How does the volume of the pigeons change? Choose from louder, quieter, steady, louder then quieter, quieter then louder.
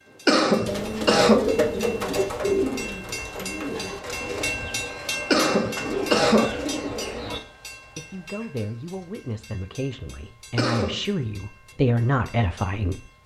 quieter then louder.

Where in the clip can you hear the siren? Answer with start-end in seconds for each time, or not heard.
not heard.